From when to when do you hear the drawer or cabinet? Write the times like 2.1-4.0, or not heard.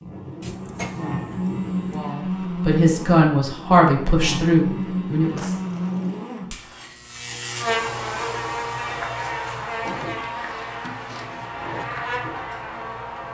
0.4-2.1, 5.3-6.2, 9.8-11.8.